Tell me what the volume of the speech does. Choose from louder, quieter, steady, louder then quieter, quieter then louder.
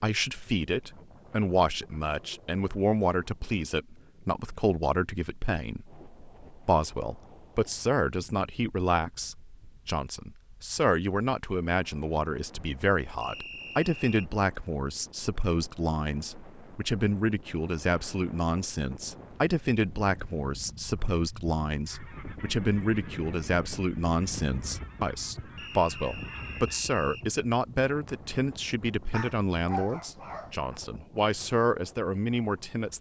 steady.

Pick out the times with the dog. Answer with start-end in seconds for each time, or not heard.
29.1-30.6.